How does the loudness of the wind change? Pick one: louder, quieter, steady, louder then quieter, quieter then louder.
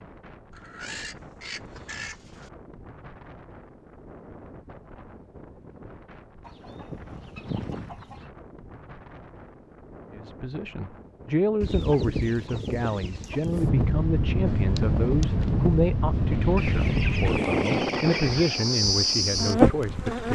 louder.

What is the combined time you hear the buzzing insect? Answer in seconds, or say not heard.
6 s.